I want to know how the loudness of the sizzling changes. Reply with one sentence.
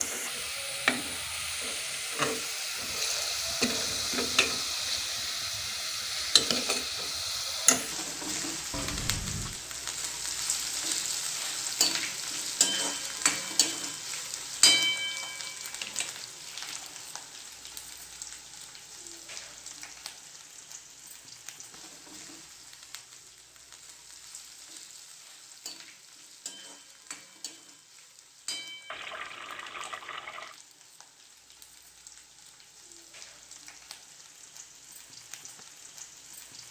The loudness of the sizzling goes down.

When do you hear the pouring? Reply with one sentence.
You can hear the pouring from 8.7 to 9.7 s, from 16.4 to 17.2 s and from 28.9 to 30.6 s.